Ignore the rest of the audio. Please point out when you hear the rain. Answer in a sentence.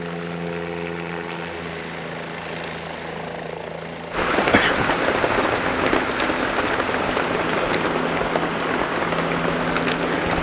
The rain can be heard from 4.1 to 10.3 s.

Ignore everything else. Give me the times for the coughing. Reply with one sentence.
You can hear the coughing from 4.5 to 4.9 s.